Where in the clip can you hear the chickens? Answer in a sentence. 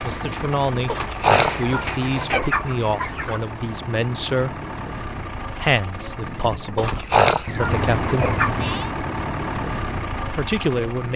The chickens can be heard from 0.8 to 3.4 s and from 6.8 to 8.6 s.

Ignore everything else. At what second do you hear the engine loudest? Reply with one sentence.
The volume of the engine peaks at 8 seconds.